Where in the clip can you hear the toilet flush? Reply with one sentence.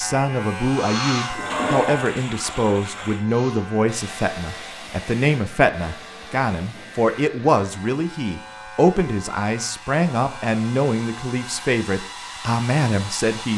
You can hear the toilet flush from 1.4 to 3.2 s.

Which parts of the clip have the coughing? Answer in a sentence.
You can't hear the coughing here.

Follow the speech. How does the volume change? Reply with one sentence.
The volume of the speech stays about the same.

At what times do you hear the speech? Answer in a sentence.
The speech can be heard from 0.0 to 13.5 s.